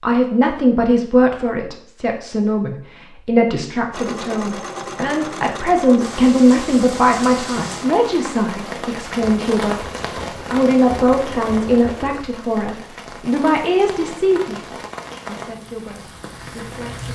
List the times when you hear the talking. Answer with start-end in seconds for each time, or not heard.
0.0-9.8, 10.5-17.1.